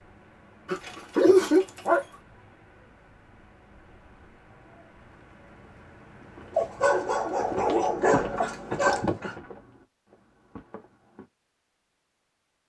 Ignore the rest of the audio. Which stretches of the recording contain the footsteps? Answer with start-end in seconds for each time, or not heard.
6.2-11.2.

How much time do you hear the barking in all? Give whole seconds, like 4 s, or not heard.
4 s.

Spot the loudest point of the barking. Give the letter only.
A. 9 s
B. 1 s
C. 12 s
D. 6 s
B.